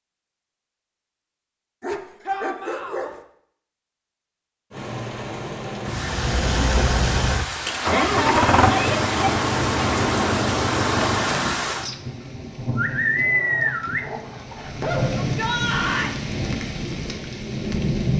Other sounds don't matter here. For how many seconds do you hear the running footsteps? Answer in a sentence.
You can't hear the running footsteps here.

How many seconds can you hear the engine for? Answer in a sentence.
The engine can be heard for 6 seconds in total.